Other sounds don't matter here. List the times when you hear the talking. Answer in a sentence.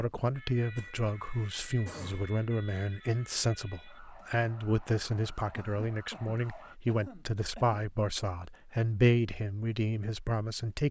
You can hear the talking from 0.0 to 10.8 s.